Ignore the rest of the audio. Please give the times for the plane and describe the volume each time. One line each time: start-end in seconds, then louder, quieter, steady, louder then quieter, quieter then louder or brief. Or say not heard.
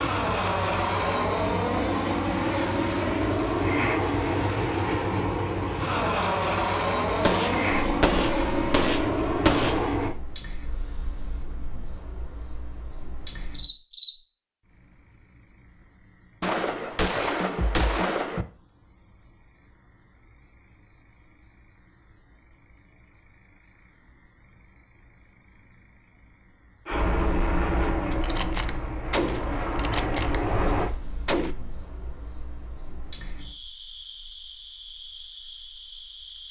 0.0-10.2 steady
26.9-30.9 quieter then louder.